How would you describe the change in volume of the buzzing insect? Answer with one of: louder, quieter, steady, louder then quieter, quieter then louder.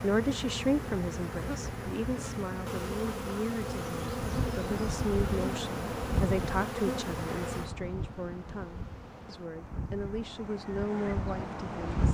quieter.